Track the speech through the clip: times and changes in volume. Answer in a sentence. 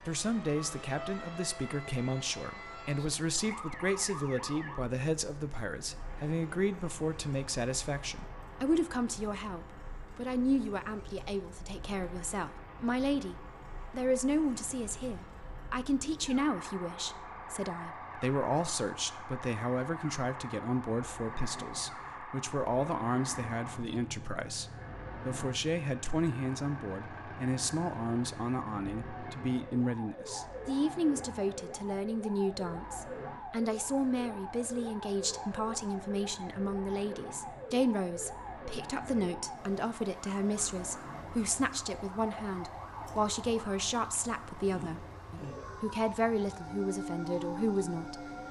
You can hear the speech from 0.1 to 48.1 s, at a steady volume.